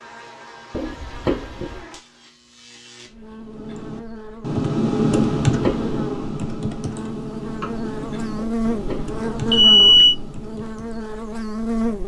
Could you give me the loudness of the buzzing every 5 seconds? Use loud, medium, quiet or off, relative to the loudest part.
quiet, loud, loud.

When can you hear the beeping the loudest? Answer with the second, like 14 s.
10 s.